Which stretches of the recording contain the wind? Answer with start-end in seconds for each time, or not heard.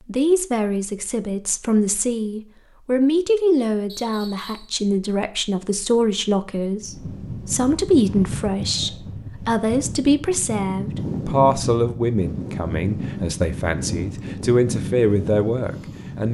6.8-16.2.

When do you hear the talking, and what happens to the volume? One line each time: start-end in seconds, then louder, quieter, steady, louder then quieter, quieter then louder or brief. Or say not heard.
0.1-16.2 steady.